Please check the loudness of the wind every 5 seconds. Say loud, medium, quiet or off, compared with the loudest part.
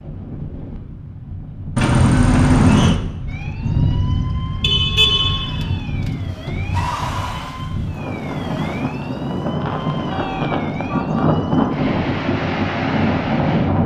medium, medium, loud.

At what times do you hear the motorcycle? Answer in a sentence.
The motorcycle can't be heard in this clip.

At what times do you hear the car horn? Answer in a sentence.
You can hear the car horn from 1.8 to 3.0 s, from 4.6 to 5.7 s and from 10.1 to 11.3 s.